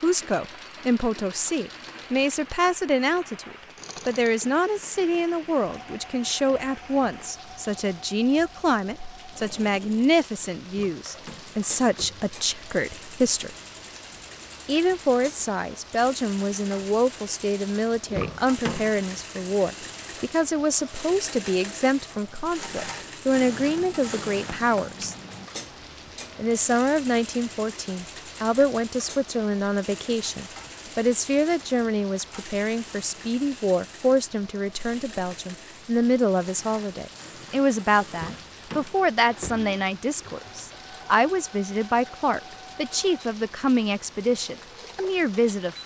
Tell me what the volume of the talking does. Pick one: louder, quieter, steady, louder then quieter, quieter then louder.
steady.